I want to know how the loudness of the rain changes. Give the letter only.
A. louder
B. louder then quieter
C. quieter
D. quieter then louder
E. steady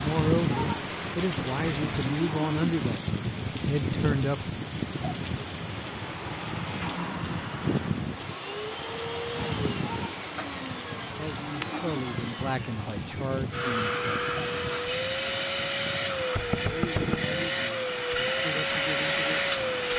C.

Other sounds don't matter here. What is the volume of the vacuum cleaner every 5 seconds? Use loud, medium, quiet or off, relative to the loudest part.
medium, medium, medium, loud.